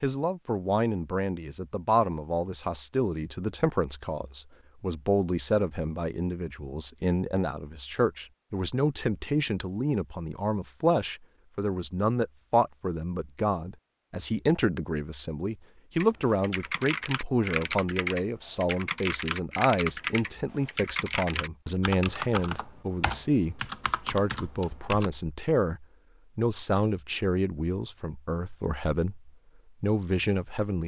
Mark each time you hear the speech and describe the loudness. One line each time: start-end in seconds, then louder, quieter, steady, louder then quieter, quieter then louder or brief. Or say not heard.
0.0-30.8 steady.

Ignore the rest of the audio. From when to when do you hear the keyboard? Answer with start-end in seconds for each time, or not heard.
16.0-25.1.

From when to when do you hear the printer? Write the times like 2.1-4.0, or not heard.
not heard.